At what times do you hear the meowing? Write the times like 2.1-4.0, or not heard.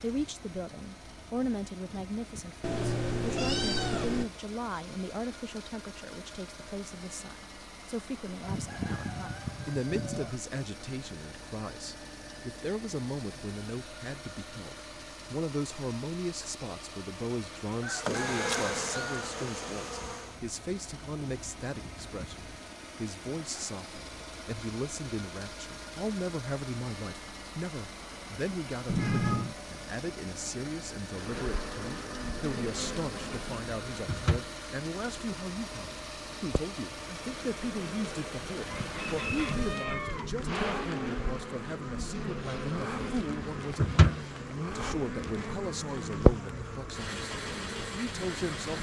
2.6-4.3, 28.9-29.6, 38.6-40.3.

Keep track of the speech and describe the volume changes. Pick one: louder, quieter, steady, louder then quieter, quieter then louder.
steady.